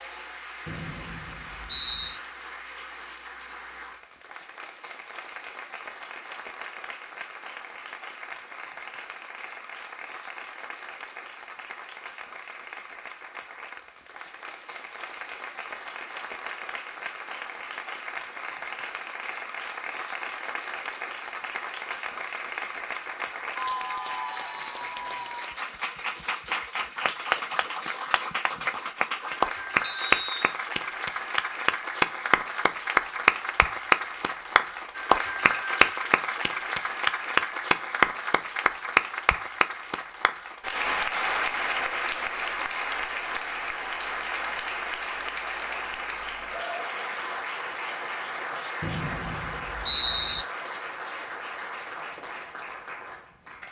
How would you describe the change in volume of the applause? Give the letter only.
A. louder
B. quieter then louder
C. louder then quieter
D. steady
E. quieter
C.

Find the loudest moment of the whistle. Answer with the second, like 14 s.
50 s.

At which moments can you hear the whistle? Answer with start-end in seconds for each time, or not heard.
0.7-2.2, 29.8-30.4, 48.8-50.5.